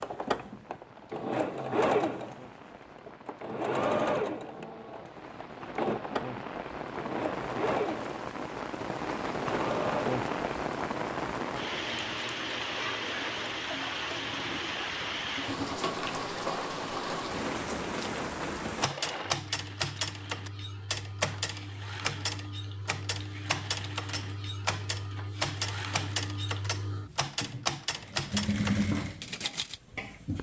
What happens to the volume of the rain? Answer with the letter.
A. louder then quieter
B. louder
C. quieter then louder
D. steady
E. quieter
B.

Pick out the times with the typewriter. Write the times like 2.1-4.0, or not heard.
18.8-29.8.